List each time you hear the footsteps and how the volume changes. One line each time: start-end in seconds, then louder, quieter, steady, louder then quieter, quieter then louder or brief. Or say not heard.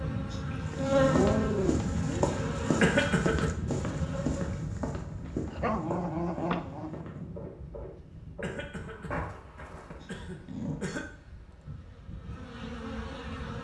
0.7-10.1 quieter.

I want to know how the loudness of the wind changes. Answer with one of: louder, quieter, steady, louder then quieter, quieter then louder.
quieter.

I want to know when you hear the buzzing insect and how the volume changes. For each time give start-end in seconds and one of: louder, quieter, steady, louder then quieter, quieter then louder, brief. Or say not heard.
0.0-4.7 quieter
11.4-13.5 brief.